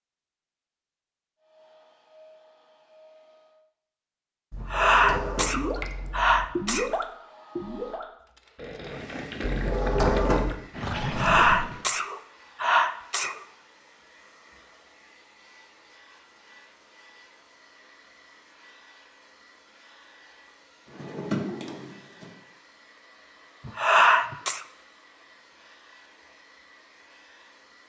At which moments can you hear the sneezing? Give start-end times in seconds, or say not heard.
4.5-6.9, 11.0-13.4, 23.6-24.6.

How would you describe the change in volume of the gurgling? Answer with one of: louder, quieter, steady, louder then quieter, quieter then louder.
quieter then louder.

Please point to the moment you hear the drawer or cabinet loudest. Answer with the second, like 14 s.
10 s.